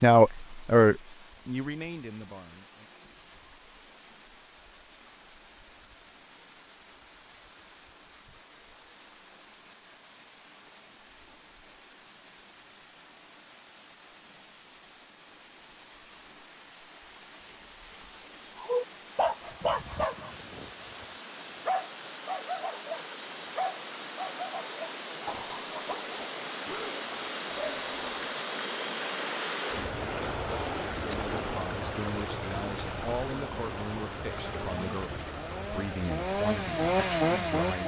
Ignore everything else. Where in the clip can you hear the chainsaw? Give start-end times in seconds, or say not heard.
34.2-37.8.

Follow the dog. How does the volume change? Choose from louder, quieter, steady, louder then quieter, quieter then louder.
quieter.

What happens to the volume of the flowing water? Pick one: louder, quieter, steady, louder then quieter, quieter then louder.
louder.